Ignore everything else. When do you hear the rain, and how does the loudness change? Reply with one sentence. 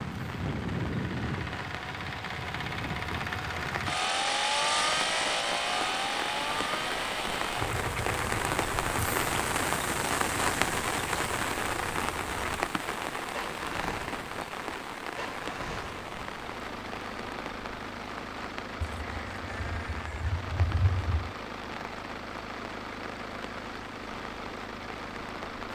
You can hear the rain from 0.0 to 25.7 s, getting louder then quieter.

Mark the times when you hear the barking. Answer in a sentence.
You can't hear the barking here.